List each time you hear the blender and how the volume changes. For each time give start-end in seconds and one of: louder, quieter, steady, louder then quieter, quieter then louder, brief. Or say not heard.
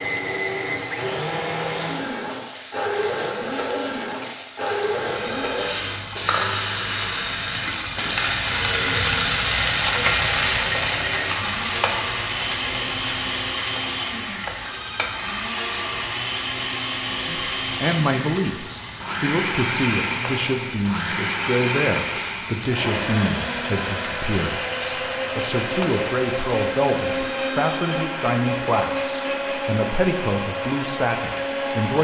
0.0-31.9 steady.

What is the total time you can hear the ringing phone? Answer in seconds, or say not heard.
3 s.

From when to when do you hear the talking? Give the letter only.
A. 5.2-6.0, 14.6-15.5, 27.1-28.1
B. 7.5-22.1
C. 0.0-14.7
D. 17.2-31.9
D.